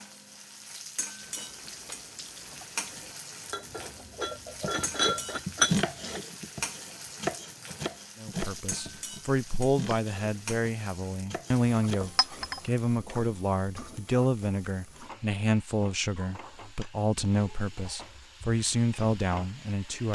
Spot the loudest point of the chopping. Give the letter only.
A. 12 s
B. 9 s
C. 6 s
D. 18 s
C.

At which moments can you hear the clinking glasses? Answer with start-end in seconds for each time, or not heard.
3.5-6.2, 12.2-12.6.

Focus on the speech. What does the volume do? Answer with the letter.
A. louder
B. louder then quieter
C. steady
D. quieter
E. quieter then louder
C.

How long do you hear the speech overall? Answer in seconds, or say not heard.
12 s.